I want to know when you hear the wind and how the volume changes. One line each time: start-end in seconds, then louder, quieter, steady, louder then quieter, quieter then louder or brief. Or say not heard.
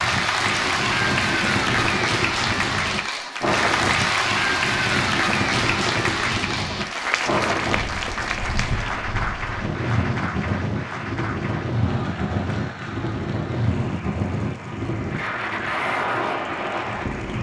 0.0-17.3 steady.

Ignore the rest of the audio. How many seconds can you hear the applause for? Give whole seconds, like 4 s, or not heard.
17 s.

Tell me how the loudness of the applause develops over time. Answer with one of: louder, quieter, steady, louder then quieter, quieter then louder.
quieter.